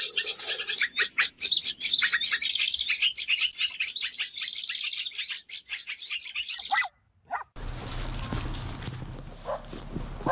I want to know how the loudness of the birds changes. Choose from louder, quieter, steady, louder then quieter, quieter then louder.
quieter.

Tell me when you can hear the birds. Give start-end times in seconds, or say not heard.
0.0-6.9.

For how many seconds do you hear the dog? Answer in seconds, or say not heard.
4 s.